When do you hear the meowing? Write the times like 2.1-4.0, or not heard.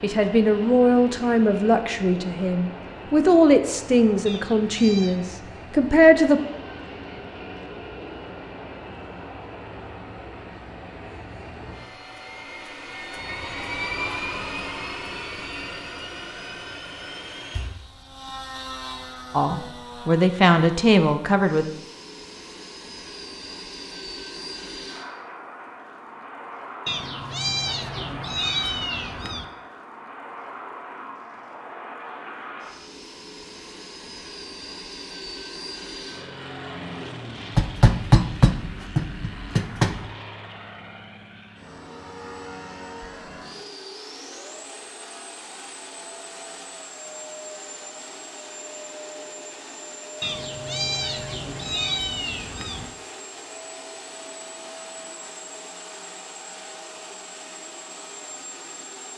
4.2-5.2, 26.9-29.5, 50.2-53.0.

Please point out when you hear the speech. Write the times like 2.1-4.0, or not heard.
0.0-6.4, 19.3-21.6.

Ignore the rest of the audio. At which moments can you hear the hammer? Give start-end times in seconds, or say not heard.
37.5-40.0.